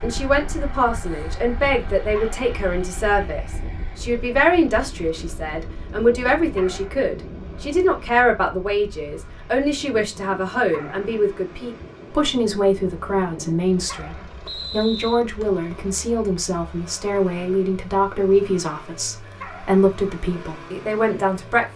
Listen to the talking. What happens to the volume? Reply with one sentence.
The loudness of the talking stays about the same.